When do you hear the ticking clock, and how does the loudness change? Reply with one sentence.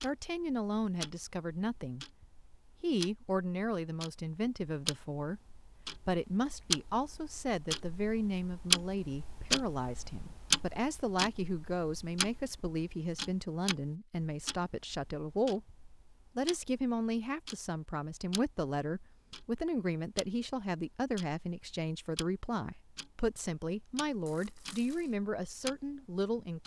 The ticking clock can be heard from 0.0 to 26.6 s, getting louder then quieter.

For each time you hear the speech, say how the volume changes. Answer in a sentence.
The speech can be heard from 0.0 to 26.6 s, at a steady volume.